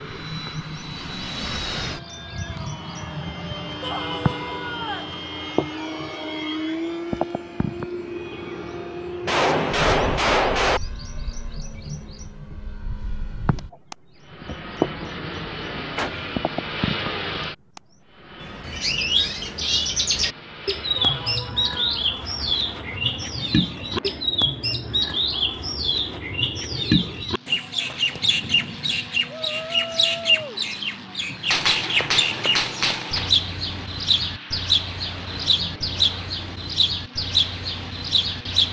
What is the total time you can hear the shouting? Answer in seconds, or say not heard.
4 s.